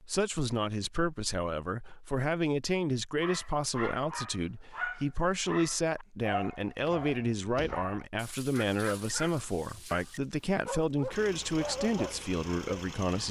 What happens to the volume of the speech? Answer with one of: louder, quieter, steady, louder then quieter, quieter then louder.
steady.